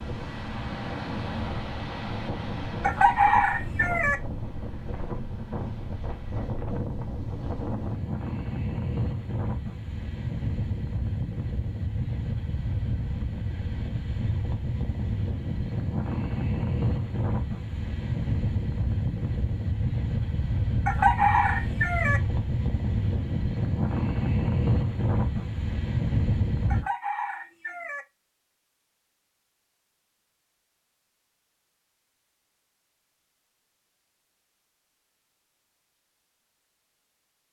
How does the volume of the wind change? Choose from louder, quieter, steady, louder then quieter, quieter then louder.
louder.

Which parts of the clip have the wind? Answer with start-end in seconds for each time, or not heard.
0.0-26.9.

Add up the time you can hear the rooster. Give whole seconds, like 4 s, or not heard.
4 s.